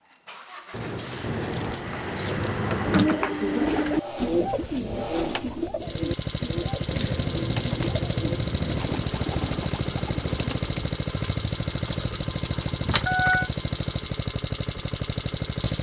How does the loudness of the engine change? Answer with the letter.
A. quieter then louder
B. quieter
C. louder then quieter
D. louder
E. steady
D.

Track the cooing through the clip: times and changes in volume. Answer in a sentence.
The cooing can be heard from 2.8 to 10.9 s, getting quieter.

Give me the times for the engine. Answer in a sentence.
The engine can be heard from 0.0 to 15.7 s.